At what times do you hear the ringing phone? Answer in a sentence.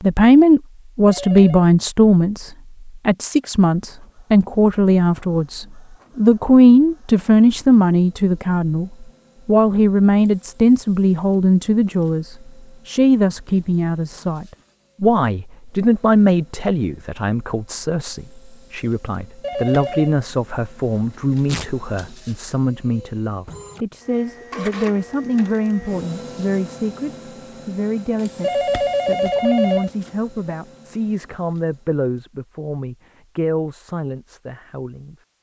The ringing phone can be heard from 1.1 to 1.7 s, from 19.4 to 20.1 s and from 28.4 to 29.9 s.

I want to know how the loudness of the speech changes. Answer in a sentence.
The loudness of the speech goes down.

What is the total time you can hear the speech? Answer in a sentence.
The speech can be heard for 35 seconds in total.